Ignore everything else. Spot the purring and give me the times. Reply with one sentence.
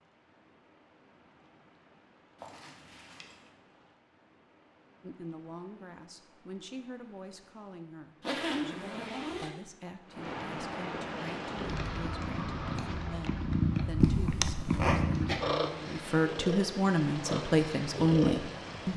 The purring can be heard from 11.3 to 18.9 s.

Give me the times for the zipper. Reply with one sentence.
The zipper can be heard from 2.4 to 3.5 s, from 8.2 to 9.5 s and from 14.0 to 14.9 s.